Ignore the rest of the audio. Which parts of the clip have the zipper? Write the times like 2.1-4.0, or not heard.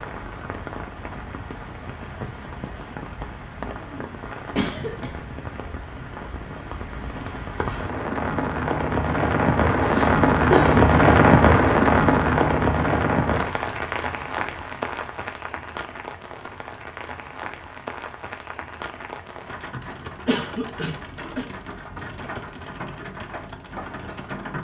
not heard.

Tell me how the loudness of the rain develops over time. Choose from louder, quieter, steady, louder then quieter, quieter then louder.
louder then quieter.